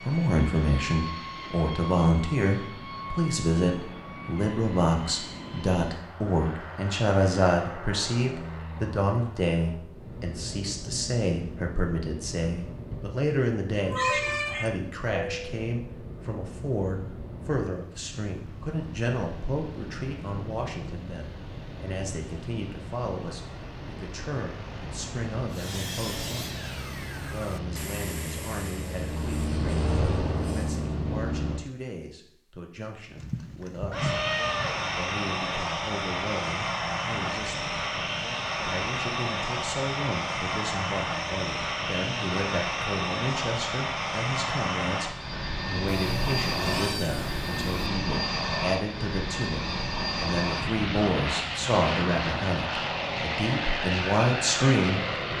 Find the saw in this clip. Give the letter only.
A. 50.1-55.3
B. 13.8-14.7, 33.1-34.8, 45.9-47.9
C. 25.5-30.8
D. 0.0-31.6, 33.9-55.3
C.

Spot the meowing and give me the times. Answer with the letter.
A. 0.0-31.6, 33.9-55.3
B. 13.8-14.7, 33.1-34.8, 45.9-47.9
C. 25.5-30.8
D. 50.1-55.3
B.